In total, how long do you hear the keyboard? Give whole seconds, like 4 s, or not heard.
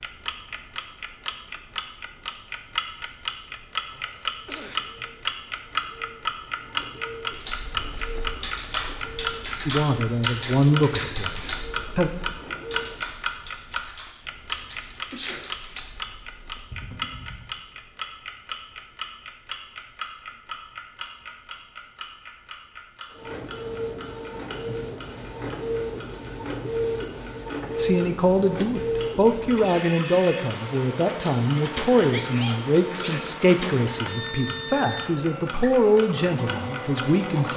10 s.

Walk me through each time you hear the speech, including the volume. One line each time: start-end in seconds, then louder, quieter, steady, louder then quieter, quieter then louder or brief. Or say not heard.
9.7-12.1 brief
27.8-37.5 steady.